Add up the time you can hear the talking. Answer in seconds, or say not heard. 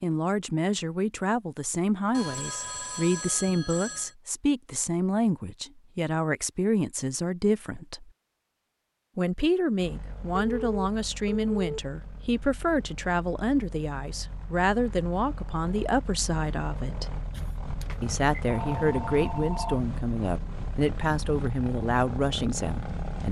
21 s.